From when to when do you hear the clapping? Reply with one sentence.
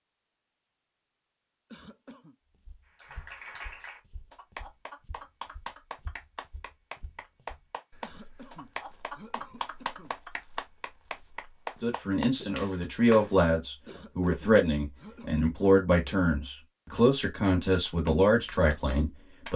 The clapping can be heard from 3.0 to 13.3 s and from 17.9 to 19.5 s.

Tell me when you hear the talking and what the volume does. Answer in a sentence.
The talking can be heard from 11.8 to 19.5 s, at a steady volume.